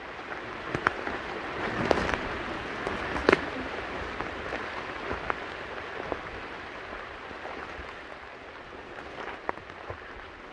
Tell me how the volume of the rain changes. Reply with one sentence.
The volume of the rain goes down.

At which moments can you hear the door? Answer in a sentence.
The door can be heard from 1.6 to 3.8 s.